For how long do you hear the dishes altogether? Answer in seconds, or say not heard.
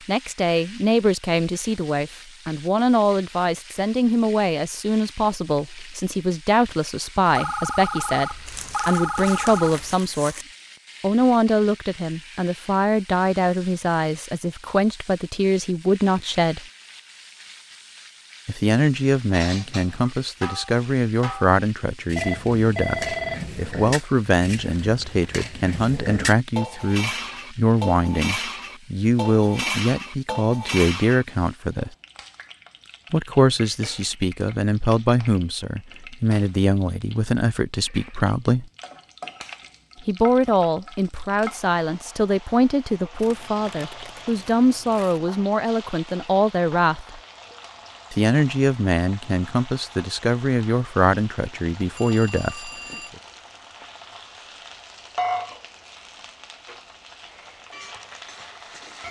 12 s.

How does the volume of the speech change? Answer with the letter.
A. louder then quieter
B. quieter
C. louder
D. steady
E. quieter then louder
D.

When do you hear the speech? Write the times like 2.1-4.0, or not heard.
0.1-10.3, 11.0-16.6, 18.4-31.9, 33.1-38.6, 40.0-47.2, 48.1-52.7.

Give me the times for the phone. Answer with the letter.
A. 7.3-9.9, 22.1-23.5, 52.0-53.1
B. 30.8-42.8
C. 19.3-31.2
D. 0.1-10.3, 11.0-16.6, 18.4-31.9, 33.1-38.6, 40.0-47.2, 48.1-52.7
A.